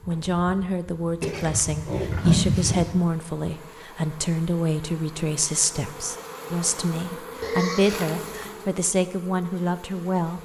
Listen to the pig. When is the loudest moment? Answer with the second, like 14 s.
2 s.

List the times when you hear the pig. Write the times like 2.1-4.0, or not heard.
1.2-3.0, 7.4-8.1.